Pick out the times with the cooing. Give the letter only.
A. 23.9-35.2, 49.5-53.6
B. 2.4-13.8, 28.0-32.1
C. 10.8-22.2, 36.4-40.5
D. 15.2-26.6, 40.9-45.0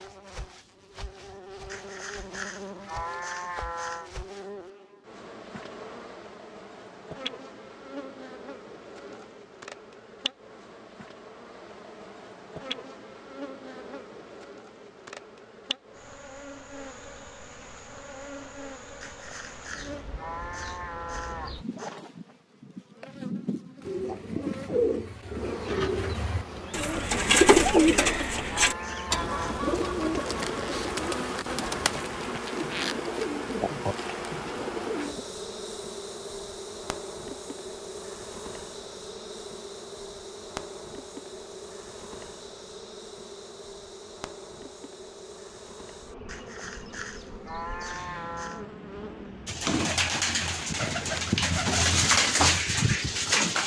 A.